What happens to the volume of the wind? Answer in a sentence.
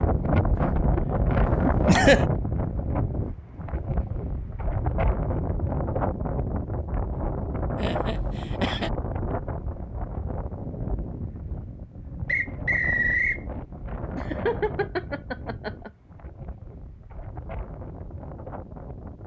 The volume of the wind goes down.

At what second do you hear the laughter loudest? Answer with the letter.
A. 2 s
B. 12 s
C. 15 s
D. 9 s
A.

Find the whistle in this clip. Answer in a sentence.
The whistle can be heard from 12.2 to 13.4 s.